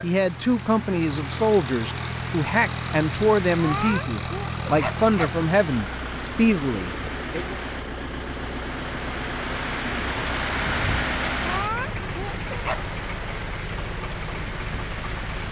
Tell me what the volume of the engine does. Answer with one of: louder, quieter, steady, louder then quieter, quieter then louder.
steady.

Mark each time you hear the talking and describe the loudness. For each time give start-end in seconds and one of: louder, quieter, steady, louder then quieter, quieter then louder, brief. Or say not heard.
0.0-7.5 steady.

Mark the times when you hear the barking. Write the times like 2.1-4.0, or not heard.
3.5-5.5, 11.4-12.9.